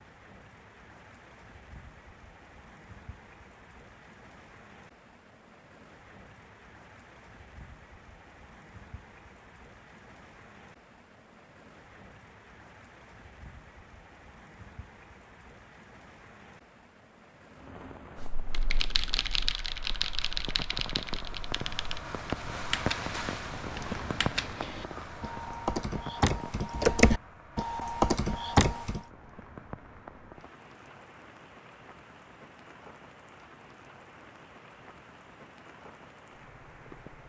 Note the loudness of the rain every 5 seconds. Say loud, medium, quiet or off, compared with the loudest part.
quiet, quiet, quiet, quiet, loud, medium, quiet, quiet.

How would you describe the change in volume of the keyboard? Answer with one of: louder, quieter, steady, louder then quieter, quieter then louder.
louder.